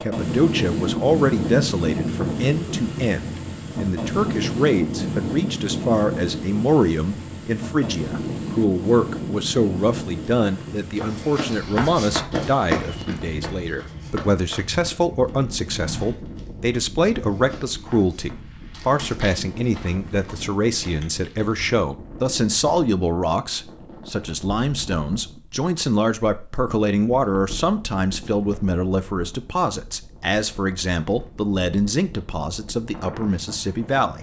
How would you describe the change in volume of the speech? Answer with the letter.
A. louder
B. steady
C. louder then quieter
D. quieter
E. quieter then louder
B.